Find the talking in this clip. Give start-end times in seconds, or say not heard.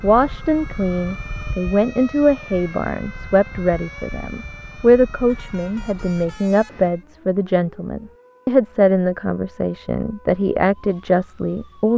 0.0-11.9.